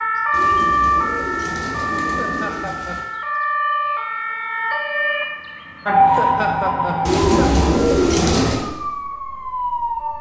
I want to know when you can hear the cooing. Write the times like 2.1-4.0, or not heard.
0.3-3.0, 7.0-8.7.